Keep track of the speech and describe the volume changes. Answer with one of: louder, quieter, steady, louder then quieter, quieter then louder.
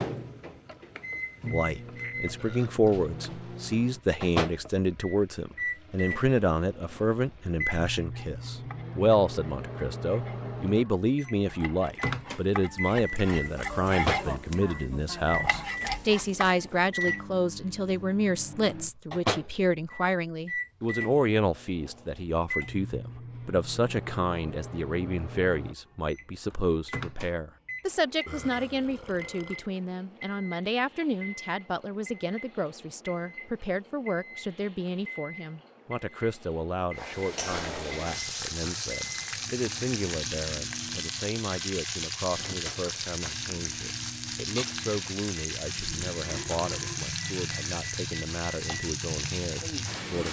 quieter.